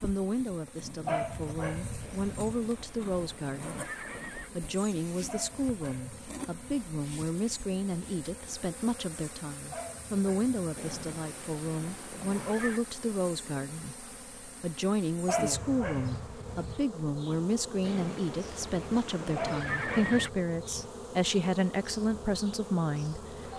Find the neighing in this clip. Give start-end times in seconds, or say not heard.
2.0-4.5, 10.8-12.8, 17.8-20.3.